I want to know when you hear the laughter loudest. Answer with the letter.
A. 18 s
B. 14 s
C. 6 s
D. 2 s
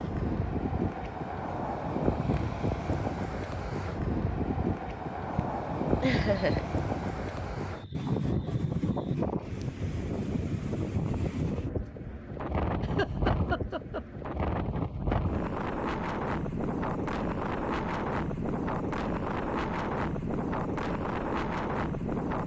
C.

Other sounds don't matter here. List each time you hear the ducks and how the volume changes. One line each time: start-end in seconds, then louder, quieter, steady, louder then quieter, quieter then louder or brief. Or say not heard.
not heard.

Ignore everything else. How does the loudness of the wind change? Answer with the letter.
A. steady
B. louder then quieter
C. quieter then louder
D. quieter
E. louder
A.